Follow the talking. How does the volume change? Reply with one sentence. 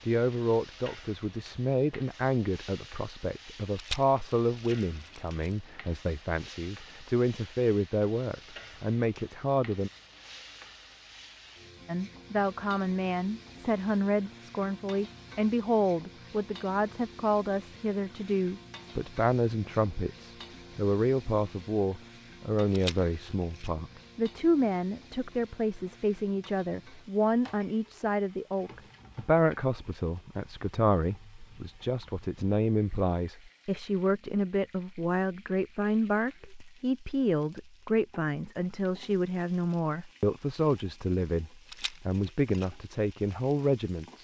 The loudness of the talking stays about the same.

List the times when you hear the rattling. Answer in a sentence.
You can hear the rattling from 3.8 to 5.5 s, from 22.7 to 23.7 s and from 41.6 to 42.6 s.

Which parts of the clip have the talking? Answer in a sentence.
You can hear the talking from 0.1 to 9.9 s and from 11.8 to 44.1 s.